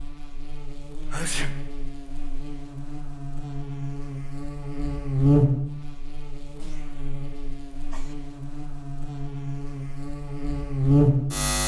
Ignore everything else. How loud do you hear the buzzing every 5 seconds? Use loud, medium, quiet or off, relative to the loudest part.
quiet, medium, loud.